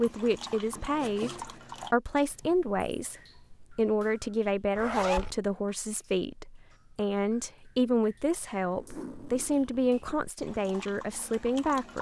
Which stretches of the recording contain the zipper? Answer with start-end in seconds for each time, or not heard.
0.8-1.9, 4.8-5.3, 8.7-10.2.